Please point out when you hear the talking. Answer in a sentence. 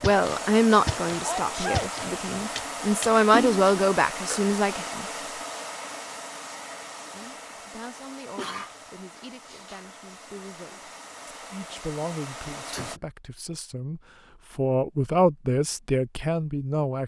You can hear the talking from 0.0 to 5.0 s and from 7.1 to 17.0 s.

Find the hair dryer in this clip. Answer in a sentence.
The hair dryer can be heard from 0.0 to 13.0 s.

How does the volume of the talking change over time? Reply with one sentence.
The volume of the talking goes down, then up.